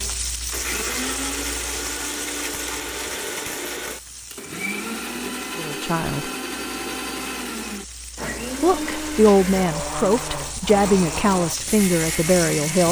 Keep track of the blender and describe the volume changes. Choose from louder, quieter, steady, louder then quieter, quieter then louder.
steady.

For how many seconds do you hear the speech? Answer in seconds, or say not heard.
5 s.